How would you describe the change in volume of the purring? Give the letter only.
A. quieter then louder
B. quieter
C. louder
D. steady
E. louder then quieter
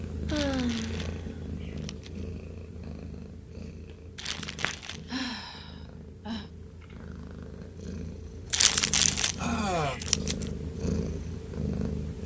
A.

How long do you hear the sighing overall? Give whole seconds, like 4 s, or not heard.
4 s.